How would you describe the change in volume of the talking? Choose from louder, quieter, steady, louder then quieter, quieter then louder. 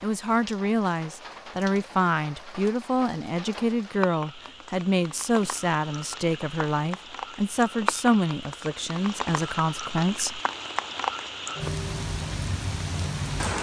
steady.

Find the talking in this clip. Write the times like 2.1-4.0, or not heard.
0.0-10.4.